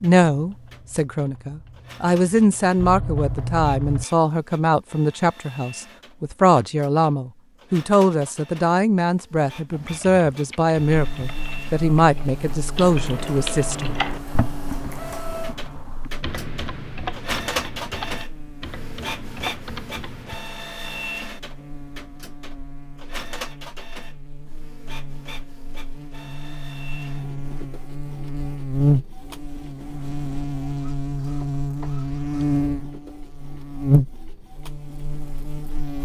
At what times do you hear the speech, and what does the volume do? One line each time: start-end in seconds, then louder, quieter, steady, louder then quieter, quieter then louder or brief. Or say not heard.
0.0-13.9 steady.